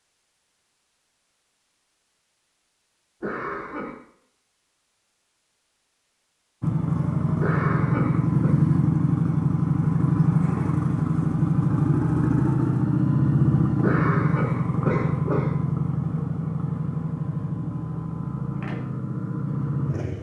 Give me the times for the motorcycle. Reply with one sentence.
The motorcycle can be heard from 6.6 to 20.1 s.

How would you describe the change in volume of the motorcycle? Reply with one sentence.
The loudness of the motorcycle goes down.